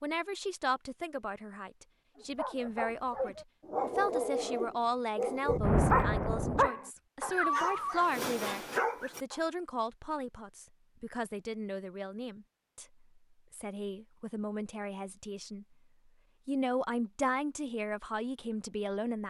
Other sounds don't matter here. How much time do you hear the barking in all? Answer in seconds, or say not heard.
7 s.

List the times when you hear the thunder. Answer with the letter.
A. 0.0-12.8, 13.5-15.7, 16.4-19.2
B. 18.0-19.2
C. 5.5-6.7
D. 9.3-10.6
C.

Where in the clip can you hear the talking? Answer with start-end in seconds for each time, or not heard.
0.0-12.8, 13.5-15.7, 16.4-19.2.